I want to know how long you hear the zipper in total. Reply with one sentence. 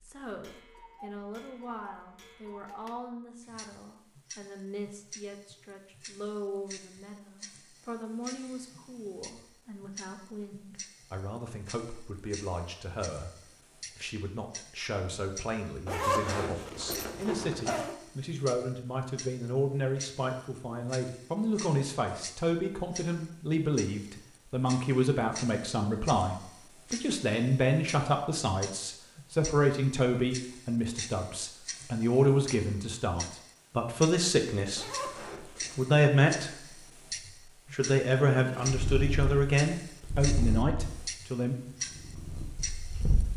The zipper can be heard for 3 seconds in total.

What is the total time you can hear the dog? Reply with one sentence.
You can't hear the dog here.